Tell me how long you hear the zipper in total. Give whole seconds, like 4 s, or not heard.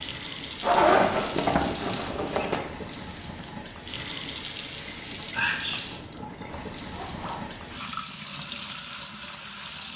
3 s.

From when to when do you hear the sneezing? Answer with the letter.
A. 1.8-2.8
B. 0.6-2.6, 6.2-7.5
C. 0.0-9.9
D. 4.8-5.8
D.